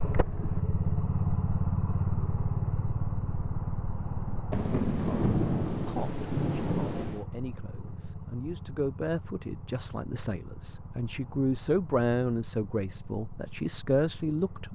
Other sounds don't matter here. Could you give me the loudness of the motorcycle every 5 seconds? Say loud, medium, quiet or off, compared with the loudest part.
loud, medium, quiet.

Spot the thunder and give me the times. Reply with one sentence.
The thunder can be heard from 4.5 to 7.2 s.